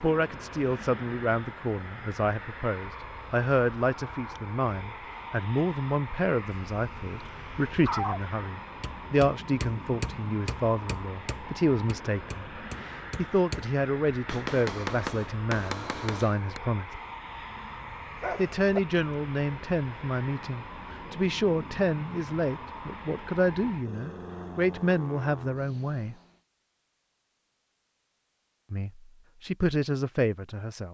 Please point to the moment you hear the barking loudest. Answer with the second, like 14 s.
8 s.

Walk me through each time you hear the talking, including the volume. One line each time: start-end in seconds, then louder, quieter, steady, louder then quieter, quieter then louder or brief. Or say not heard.
0.0-16.9 steady
18.4-26.1 steady
28.7-30.8 brief.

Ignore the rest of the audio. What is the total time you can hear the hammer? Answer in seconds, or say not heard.
8 s.